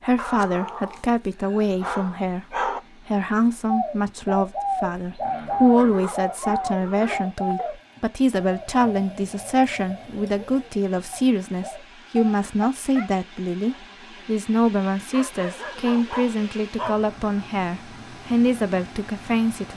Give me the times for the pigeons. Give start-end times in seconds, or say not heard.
3.6-11.8.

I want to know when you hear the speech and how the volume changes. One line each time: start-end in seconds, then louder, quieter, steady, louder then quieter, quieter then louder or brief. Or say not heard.
0.0-19.7 steady.